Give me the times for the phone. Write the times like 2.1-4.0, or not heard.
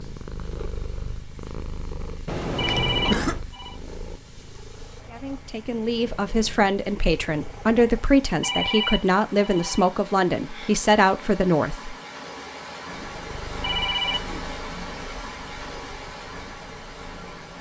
2.5-3.8, 8.4-9.9, 13.6-14.2.